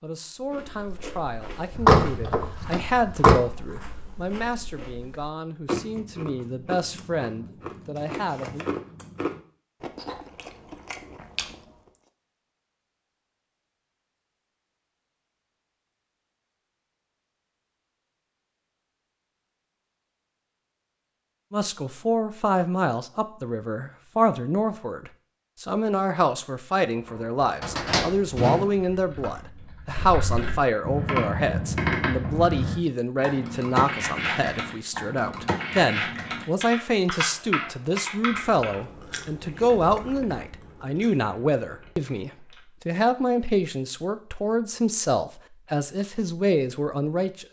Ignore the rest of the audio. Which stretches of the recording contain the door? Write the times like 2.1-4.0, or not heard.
1.8-3.4, 27.6-28.7.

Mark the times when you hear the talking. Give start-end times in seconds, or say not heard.
0.0-8.7, 21.5-47.4.